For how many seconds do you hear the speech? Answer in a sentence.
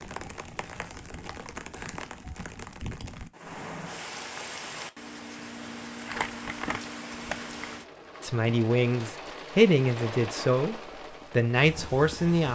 The speech can be heard for 4 seconds in total.